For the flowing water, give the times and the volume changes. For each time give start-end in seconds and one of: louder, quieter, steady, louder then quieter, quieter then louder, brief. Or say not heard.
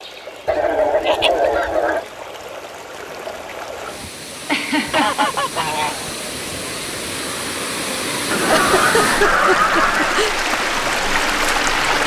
0.0-12.0 louder.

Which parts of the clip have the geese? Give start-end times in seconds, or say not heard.
0.5-2.0, 4.9-6.0, 8.3-10.3.